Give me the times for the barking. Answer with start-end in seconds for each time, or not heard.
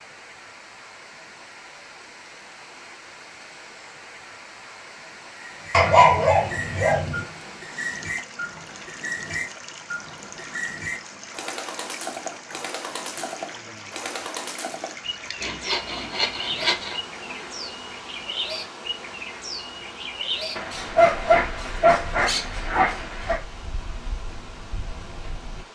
5.7-7.2, 20.6-23.4.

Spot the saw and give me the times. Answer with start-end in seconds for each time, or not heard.
15.4-17.0.